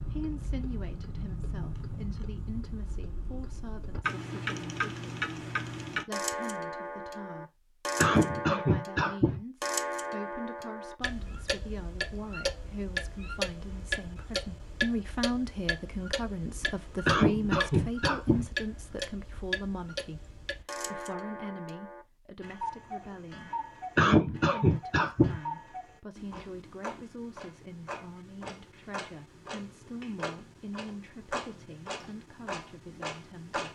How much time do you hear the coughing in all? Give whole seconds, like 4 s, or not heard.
4 s.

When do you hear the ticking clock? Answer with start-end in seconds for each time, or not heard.
0.0-33.6.